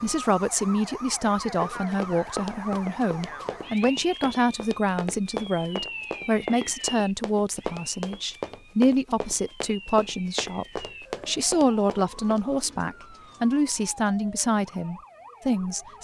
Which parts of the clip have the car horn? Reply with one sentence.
The car horn can't be heard in this clip.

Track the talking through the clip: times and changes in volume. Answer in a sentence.
The talking can be heard from 0.0 to 15.9 s, at a steady volume.